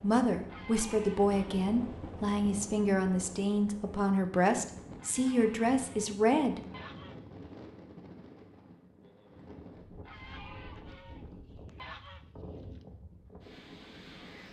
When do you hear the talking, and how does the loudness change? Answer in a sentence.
The talking can be heard from 0.0 to 6.6 s, at a steady volume.